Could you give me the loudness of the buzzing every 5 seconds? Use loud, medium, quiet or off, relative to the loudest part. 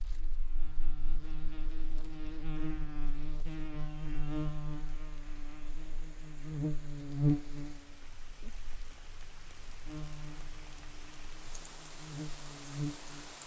medium, loud, medium.